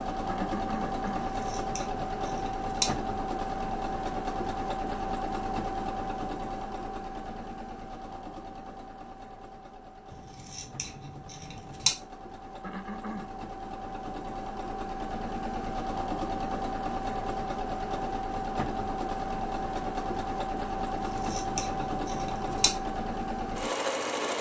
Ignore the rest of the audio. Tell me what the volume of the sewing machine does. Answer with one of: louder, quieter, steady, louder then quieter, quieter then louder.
quieter then louder.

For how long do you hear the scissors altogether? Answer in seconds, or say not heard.
5 s.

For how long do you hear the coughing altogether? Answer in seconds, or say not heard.
2 s.